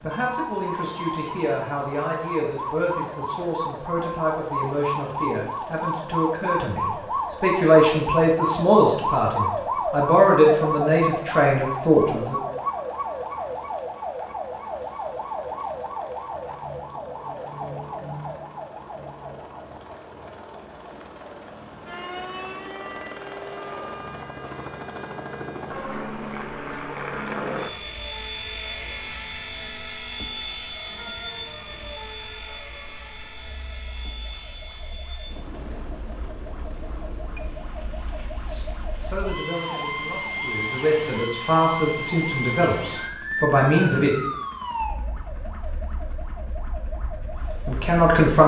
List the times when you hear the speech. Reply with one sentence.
The speech can be heard from 0.0 to 12.3 s, from 38.5 to 44.1 s and from 47.2 to 48.4 s.